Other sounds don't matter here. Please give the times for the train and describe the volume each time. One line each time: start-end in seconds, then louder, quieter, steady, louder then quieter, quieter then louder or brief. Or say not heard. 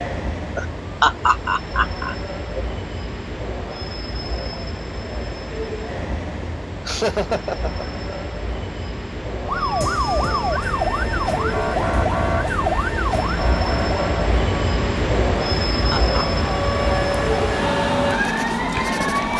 0.0-19.3 louder.